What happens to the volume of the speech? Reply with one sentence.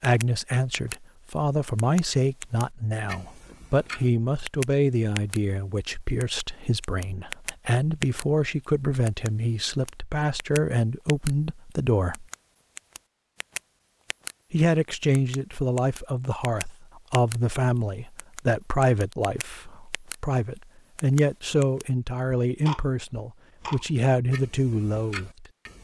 The loudness of the speech stays about the same.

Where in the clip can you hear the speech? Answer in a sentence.
You can hear the speech from 0.0 to 12.2 s and from 14.5 to 25.4 s.